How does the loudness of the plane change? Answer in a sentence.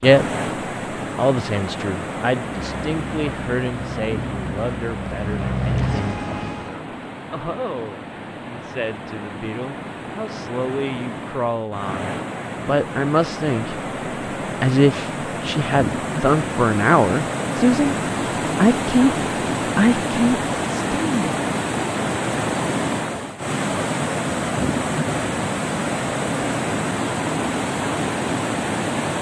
The volume of the plane goes up.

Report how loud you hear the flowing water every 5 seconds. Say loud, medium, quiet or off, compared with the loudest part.
medium, medium, medium, loud, loud, loud.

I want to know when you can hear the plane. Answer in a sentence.
The plane can be heard from 2.6 to 6.8 s.